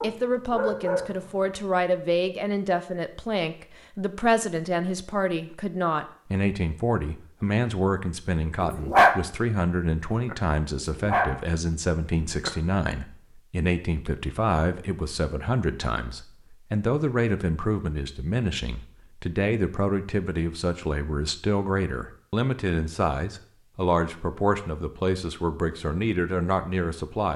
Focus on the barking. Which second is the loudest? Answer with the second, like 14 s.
9 s.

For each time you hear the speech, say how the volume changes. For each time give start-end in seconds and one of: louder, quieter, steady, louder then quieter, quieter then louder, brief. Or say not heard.
0.0-27.3 steady.